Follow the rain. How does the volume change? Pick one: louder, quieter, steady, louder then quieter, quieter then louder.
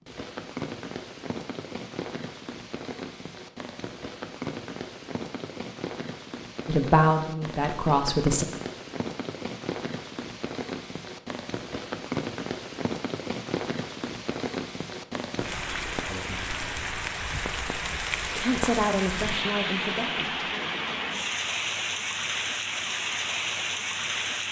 louder.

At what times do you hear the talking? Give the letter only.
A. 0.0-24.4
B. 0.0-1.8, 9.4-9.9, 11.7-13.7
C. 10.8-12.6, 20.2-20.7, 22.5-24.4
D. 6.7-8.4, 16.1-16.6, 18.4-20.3
D.